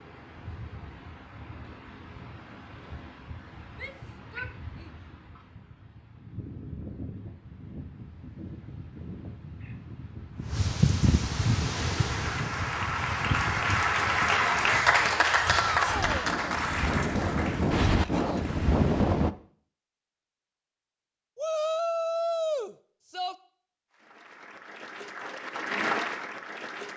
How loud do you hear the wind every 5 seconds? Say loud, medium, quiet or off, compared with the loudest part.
quiet, quiet, loud, loud, off, off.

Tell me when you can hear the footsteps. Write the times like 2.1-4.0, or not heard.
not heard.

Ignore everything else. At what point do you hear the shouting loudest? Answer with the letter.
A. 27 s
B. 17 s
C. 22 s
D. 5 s
C.